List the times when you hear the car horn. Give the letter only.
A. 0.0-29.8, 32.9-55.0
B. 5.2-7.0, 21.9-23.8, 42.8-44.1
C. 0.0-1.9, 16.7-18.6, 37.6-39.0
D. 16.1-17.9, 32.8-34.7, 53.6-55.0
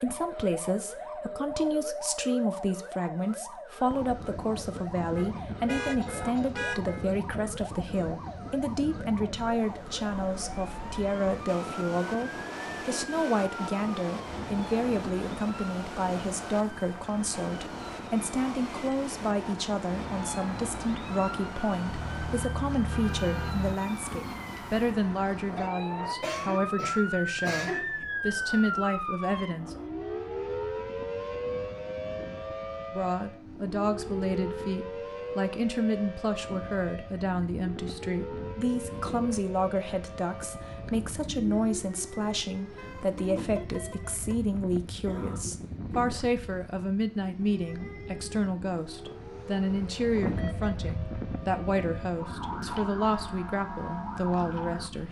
B.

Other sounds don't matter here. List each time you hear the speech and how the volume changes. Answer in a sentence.
The speech can be heard from 0.0 to 29.8 s, at a steady volume; and from 32.9 to 55.0 s, at a steady volume.